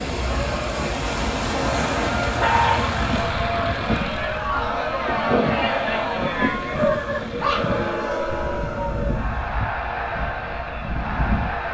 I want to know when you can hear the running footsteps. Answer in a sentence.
The running footsteps can't be heard in this clip.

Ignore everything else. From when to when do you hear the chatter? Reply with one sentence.
The chatter can be heard from 0.1 to 11.6 s.